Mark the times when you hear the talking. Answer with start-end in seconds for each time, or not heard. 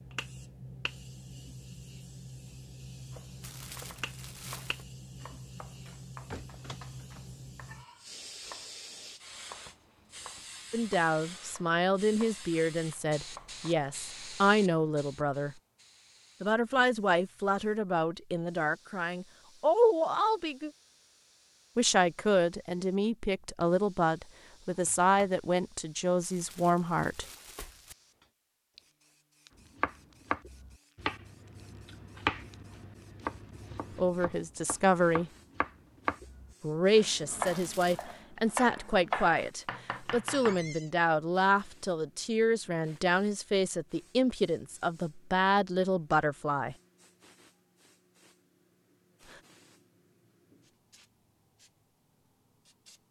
10.7-15.6, 16.4-20.7, 21.8-27.2, 34.0-35.3, 36.6-46.8.